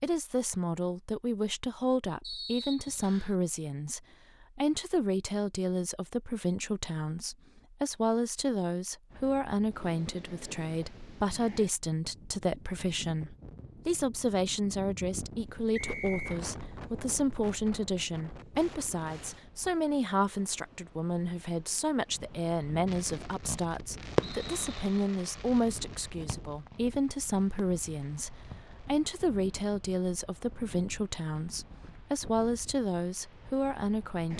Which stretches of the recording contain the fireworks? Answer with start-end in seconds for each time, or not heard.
22.9-28.9.